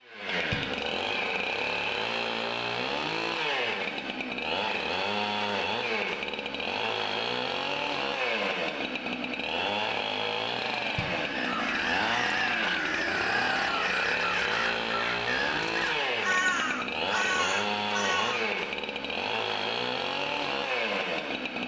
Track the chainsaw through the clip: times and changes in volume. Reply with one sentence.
The chainsaw can be heard from 0.0 to 21.6 s, at a steady volume.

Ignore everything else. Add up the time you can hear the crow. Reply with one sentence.
The crow can be heard for 7 seconds in total.